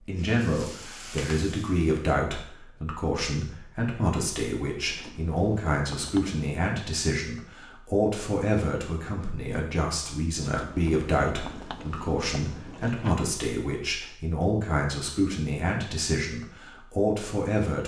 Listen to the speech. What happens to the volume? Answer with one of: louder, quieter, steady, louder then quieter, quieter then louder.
steady.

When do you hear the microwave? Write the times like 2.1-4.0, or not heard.
not heard.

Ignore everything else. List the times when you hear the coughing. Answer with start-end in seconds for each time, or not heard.
not heard.